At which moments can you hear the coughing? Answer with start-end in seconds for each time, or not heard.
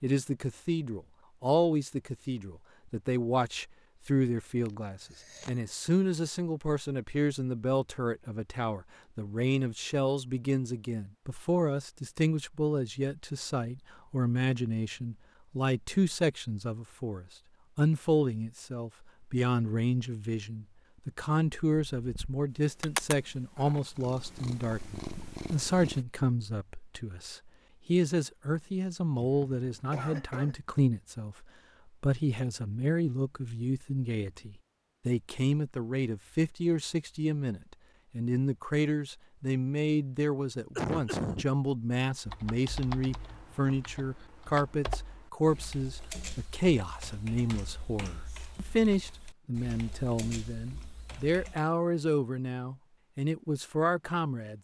4.7-5.5, 29.2-30.6, 40.8-41.5.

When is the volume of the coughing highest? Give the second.
41 s.